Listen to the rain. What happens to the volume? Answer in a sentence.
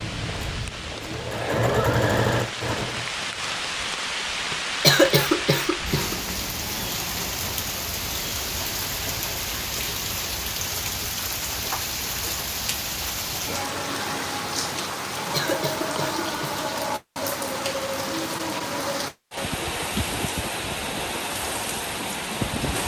The volume of the rain stays about the same.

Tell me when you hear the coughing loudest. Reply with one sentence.
The loudest moment of the coughing is at 5 seconds.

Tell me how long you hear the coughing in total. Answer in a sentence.
The coughing can be heard for 3 seconds in total.